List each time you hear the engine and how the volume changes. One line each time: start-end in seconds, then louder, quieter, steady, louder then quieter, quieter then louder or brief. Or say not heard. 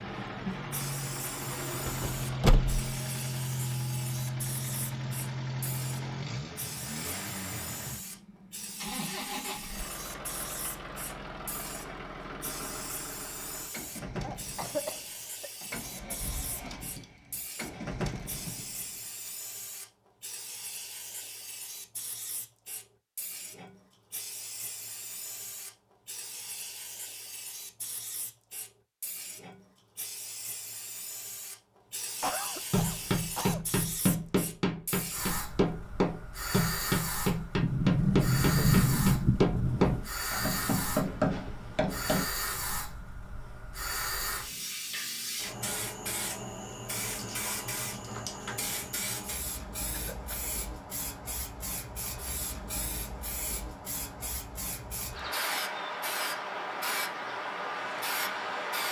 0.0-19.3 quieter.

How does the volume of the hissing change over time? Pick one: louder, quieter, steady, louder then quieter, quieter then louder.
louder.